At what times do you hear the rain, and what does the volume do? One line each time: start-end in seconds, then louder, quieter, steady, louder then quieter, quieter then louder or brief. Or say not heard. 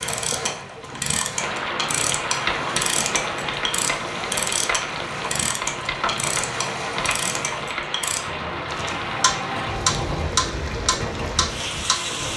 0.1-12.3 steady.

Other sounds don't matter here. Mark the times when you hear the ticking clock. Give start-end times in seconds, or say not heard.
0.0-12.3.